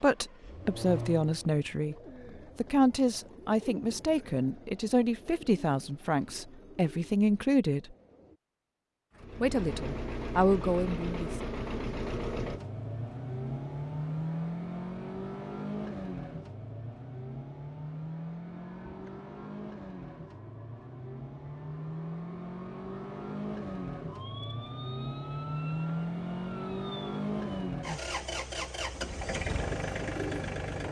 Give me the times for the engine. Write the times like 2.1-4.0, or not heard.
0.0-1.6, 9.2-30.8.